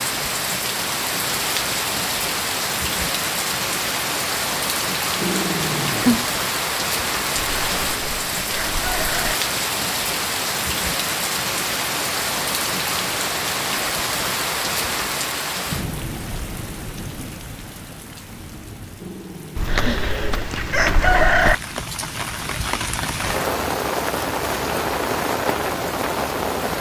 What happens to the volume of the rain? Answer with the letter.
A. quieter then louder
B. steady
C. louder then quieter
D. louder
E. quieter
A.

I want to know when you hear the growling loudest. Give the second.
6 s.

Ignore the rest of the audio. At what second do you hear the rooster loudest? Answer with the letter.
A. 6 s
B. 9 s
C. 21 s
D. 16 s
C.